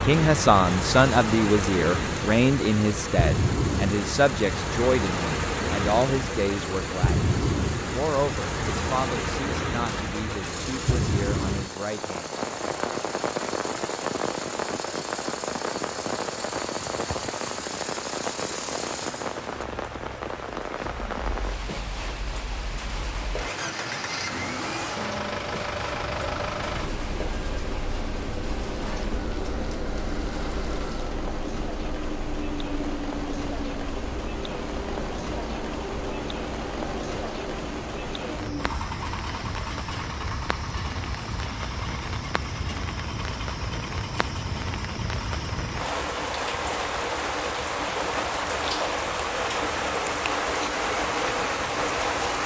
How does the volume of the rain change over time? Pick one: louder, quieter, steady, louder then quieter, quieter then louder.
quieter then louder.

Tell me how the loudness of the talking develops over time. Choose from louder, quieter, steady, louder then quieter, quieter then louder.
quieter.